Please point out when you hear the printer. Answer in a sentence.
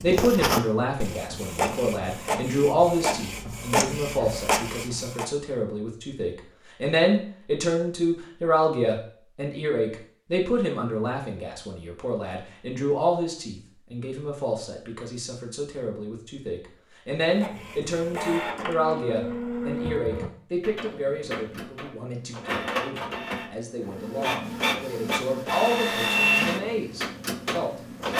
The printer can be heard from 0.0 to 5.3 s and from 17.2 to 28.1 s.